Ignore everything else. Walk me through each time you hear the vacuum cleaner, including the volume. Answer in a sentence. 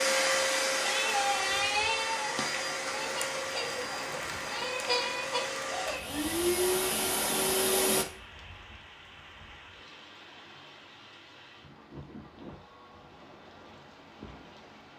The vacuum cleaner can be heard from 0.0 to 8.1 s, getting quieter then louder.